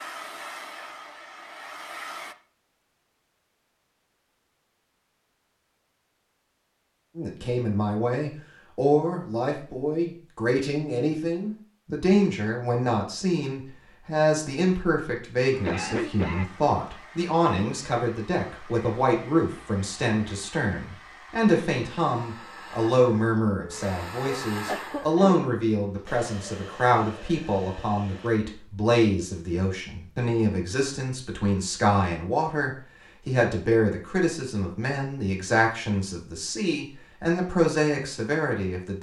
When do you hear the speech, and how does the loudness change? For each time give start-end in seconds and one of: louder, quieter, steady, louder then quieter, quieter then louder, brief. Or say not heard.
7.2-38.9 steady.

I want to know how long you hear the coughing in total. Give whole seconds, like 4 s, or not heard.
3 s.